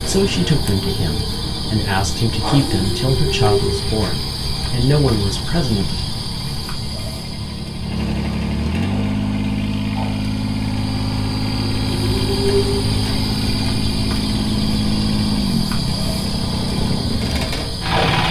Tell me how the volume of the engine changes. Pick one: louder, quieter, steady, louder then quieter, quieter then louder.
louder.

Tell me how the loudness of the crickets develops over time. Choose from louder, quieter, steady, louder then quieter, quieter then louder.
quieter then louder.